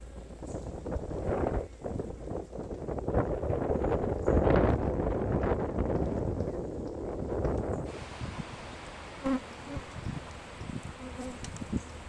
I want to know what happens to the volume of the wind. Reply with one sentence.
The loudness of the wind goes up, then down.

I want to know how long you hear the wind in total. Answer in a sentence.
You can hear the wind for 12 seconds altogether.